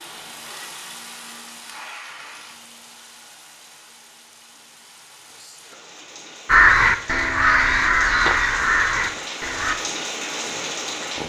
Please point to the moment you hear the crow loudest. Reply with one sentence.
The volume of the crow peaks at 7 seconds.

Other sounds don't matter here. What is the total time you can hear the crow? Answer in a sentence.
The crow can be heard for 3 seconds in total.